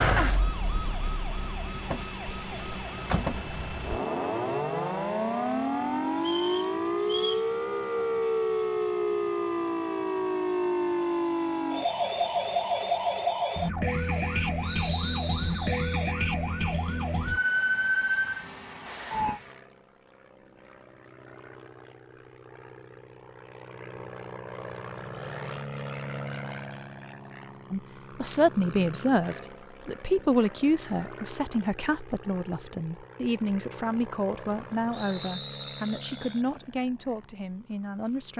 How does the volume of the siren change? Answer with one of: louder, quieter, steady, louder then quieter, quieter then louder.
louder.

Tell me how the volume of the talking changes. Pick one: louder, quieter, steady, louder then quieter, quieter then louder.
quieter.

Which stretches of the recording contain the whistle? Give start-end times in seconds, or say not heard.
6.2-7.5, 14.6-16.1, 34.9-36.5.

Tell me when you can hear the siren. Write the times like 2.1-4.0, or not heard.
0.0-19.4.